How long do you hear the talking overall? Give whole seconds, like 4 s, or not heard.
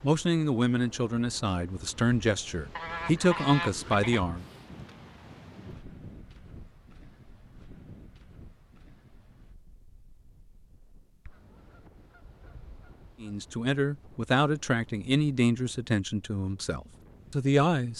9 s.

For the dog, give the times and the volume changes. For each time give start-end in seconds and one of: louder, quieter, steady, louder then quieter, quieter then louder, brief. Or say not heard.
not heard.